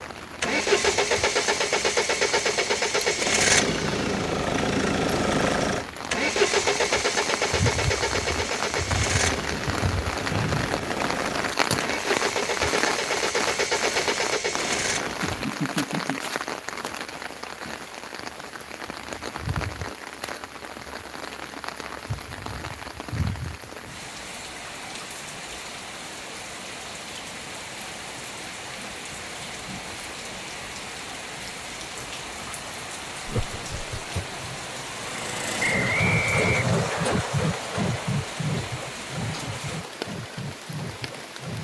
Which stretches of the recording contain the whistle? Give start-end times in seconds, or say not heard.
10.3-10.9, 35.6-37.1.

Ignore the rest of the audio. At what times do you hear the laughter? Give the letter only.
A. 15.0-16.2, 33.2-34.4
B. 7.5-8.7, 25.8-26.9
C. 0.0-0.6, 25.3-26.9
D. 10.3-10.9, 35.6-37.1
A.